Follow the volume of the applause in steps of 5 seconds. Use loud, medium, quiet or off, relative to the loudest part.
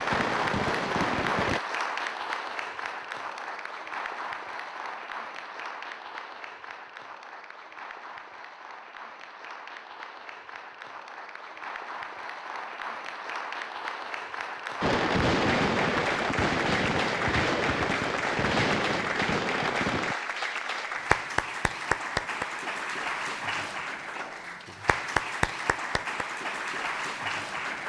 loud, medium, medium, loud, loud, loud.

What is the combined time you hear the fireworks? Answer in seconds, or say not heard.
7 s.